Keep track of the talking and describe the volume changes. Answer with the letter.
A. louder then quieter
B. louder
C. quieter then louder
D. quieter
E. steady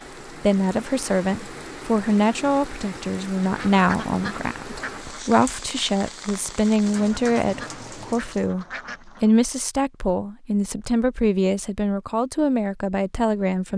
E.